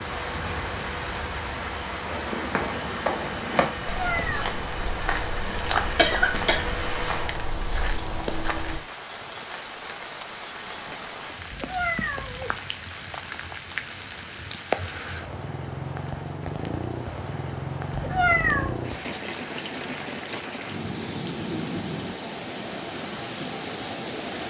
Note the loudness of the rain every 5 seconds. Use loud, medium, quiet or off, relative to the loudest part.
loud, medium, loud, loud, loud.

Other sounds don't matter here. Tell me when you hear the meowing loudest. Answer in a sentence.
The volume of the meowing peaks at 18 seconds.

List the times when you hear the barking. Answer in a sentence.
The barking can't be heard in this clip.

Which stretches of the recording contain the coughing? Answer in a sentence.
You can hear the coughing from 6.0 to 6.7 s.